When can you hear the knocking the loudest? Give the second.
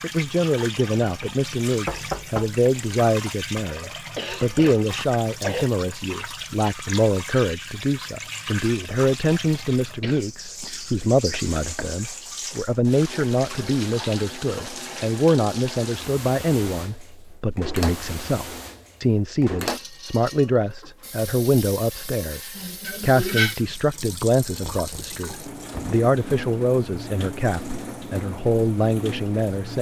2 s.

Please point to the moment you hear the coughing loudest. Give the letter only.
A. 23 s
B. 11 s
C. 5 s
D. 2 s
A.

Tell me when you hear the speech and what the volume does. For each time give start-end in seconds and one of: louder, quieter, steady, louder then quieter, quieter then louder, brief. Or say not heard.
0.0-29.7 steady.